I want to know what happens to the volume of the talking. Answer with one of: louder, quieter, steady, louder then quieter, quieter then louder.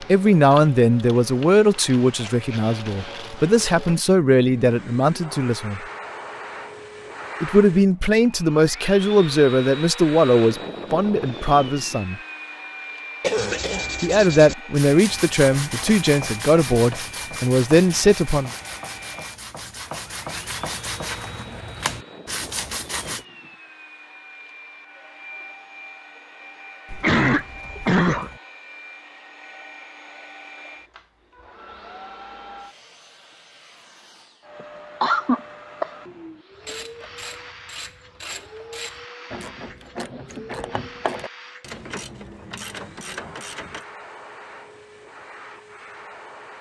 steady.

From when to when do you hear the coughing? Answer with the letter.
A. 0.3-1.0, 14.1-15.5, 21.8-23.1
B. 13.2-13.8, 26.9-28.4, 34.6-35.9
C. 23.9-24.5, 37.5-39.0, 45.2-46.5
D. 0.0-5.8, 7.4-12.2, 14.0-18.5
B.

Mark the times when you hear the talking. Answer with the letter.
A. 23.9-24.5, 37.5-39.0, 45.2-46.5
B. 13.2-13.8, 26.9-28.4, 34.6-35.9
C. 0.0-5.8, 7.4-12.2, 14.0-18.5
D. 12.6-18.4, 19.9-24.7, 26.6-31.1
C.